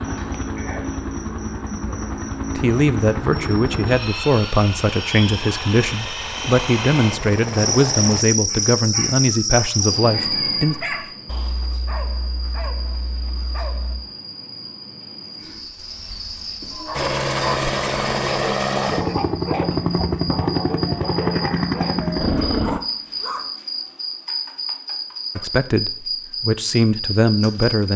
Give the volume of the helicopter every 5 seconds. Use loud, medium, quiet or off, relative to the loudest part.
medium, medium, off, loud, loud, off.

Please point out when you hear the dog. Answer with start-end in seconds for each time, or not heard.
8.4-14.0, 16.7-23.5.